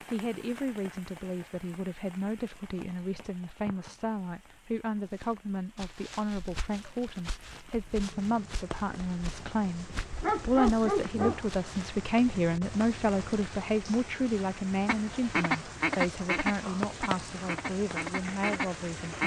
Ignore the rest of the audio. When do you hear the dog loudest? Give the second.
11 s.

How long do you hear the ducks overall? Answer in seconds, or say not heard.
4 s.